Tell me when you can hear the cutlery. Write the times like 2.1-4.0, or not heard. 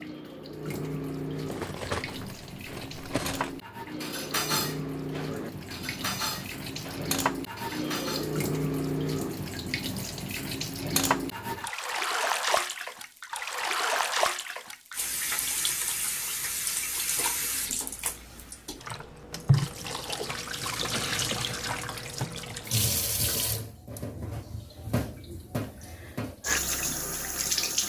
1.4-8.3.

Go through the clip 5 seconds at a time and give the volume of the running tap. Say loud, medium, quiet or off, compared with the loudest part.
medium, loud, loud, loud, loud, loud.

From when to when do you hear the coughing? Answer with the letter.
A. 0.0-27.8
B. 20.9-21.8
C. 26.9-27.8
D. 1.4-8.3
B.